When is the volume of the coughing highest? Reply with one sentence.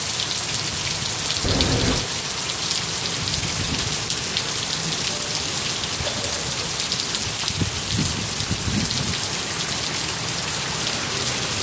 The loudest moment of the coughing is at 2 seconds.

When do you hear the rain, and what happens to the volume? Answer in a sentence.
The rain can be heard from 0.0 to 11.5 s, at a steady volume.